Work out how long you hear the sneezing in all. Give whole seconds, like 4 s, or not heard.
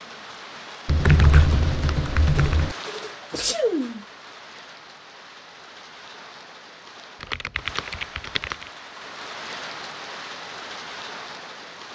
2 s.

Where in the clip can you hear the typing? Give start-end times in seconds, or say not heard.
0.8-2.8, 7.2-8.7.